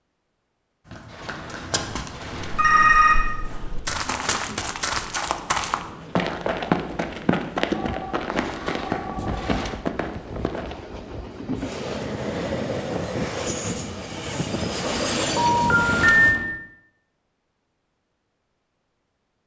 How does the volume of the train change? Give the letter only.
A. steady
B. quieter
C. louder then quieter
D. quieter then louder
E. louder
E.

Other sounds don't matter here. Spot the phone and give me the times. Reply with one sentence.
You can hear the phone from 2.5 to 3.1 s, from 7.7 to 9.6 s and from 15.3 to 16.4 s.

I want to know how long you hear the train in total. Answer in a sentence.
The train can be heard for 14 seconds in total.